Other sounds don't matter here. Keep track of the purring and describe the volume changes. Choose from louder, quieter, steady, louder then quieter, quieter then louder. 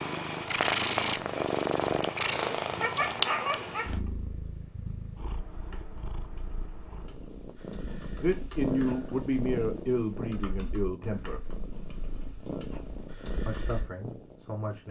quieter.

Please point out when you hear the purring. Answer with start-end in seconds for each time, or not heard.
0.0-14.8.